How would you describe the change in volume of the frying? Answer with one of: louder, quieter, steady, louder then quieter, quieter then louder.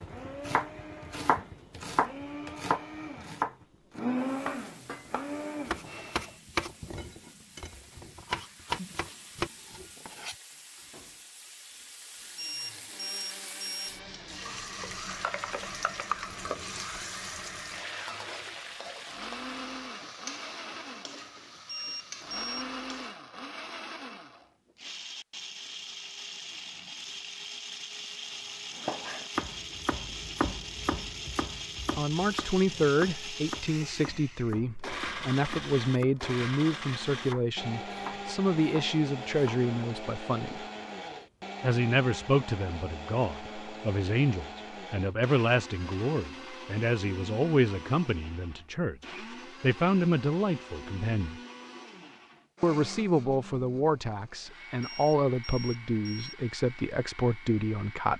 louder then quieter.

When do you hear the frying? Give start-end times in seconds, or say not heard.
4.2-23.2.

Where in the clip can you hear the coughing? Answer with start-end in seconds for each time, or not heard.
not heard.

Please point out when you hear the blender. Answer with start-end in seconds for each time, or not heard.
0.0-6.4, 12.2-58.1.